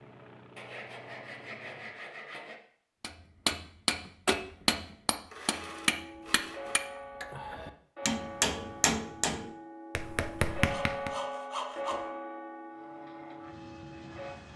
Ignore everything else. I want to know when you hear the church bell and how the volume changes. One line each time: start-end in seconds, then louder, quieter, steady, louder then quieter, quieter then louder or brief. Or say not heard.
5.5-14.4 louder then quieter.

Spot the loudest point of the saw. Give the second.
12 s.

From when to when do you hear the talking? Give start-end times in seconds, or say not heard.
not heard.